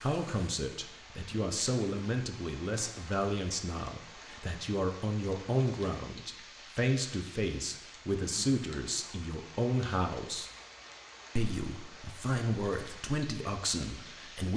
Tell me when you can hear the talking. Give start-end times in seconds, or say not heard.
0.0-10.5, 11.3-14.5.